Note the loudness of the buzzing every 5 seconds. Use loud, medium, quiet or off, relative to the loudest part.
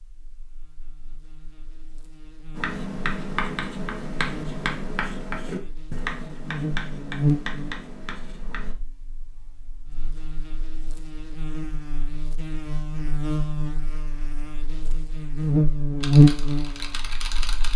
quiet, medium, quiet, loud.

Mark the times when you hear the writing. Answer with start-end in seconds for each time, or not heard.
2.5-8.8.